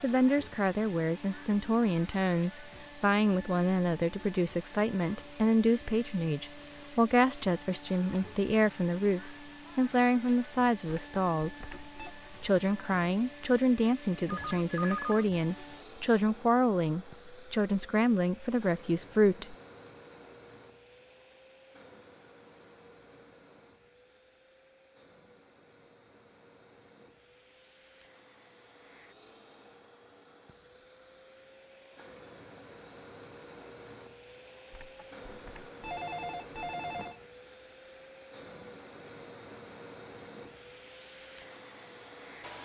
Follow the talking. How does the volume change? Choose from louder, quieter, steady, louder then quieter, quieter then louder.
steady.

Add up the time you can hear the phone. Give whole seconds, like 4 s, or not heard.
5 s.